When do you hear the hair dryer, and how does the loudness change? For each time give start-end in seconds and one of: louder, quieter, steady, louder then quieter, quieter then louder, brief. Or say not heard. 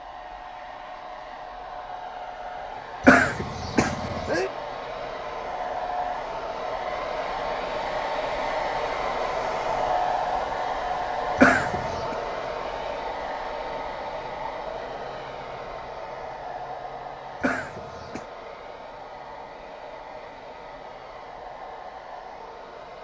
0.0-22.9 louder then quieter.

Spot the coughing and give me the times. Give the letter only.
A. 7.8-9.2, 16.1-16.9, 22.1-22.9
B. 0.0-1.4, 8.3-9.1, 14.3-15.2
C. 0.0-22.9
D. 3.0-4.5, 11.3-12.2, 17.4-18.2
D.